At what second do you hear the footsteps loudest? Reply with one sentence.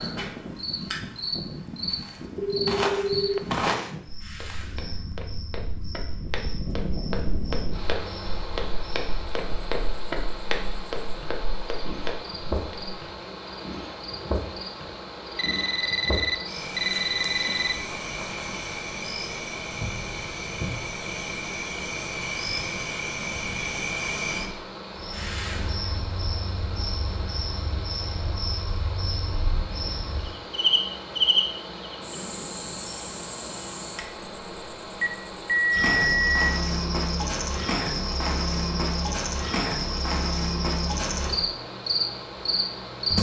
The loudest moment of the footsteps is at 4 seconds.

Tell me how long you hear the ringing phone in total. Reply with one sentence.
The ringing phone can be heard for 5 seconds in total.